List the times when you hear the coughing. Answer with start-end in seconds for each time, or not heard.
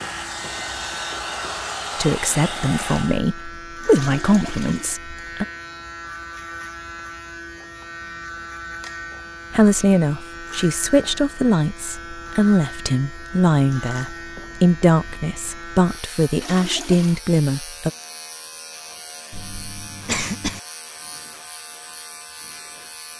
19.3-20.6.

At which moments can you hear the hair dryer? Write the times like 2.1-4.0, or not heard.
0.0-3.2.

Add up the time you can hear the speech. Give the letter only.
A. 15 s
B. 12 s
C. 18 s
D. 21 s
B.